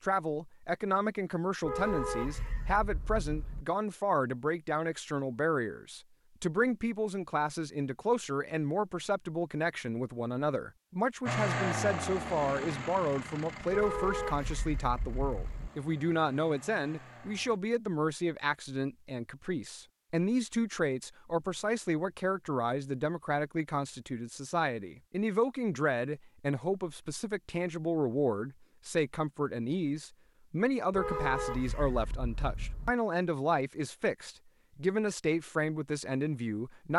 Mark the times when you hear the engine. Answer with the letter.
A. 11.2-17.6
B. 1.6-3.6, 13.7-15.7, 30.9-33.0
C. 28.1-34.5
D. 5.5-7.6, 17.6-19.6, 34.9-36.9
A.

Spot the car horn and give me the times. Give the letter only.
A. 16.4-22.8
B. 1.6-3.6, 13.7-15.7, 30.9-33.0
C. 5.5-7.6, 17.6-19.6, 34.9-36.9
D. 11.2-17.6
B.